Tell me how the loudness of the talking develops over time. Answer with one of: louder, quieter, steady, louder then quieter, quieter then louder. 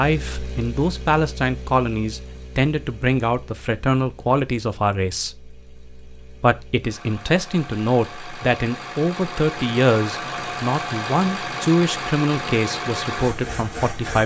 steady.